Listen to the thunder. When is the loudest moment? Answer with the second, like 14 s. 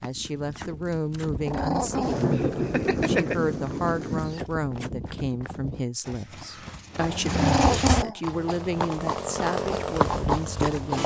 2 s.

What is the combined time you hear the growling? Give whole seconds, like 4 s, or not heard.
3 s.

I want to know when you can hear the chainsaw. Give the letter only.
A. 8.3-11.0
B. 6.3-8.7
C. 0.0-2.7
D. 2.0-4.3
A.